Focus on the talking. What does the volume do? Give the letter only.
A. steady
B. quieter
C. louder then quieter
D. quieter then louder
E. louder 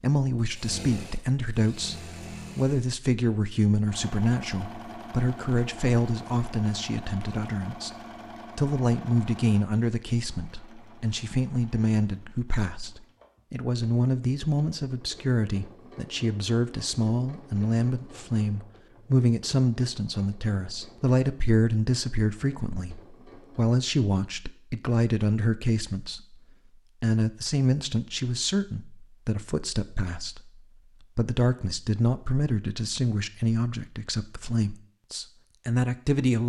A.